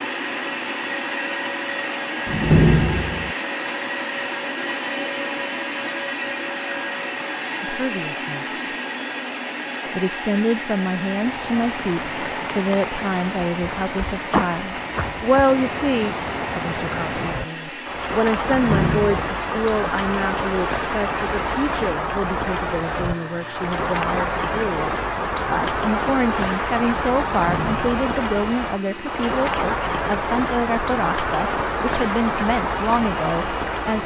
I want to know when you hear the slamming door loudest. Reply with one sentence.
The volume of the slamming door peaks at 3 seconds.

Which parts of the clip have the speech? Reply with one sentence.
The speech can be heard from 7.6 to 8.6 s and from 9.9 to 34.0 s.